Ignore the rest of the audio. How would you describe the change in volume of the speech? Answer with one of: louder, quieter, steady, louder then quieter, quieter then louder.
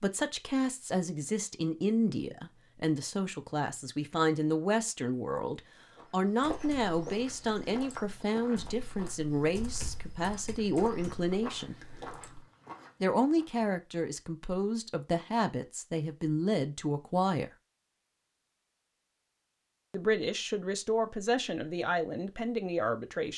steady.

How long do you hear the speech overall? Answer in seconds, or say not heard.
20 s.